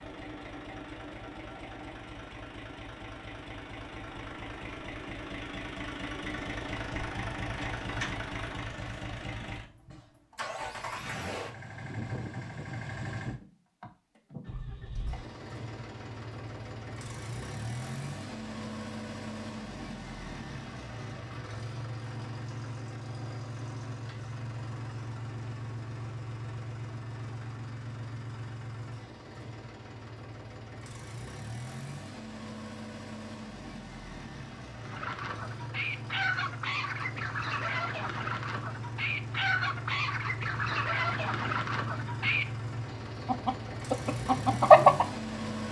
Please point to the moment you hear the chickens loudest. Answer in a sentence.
The loudest moment of the chickens is at 45 seconds.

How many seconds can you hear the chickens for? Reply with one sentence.
You can hear the chickens for 10 seconds altogether.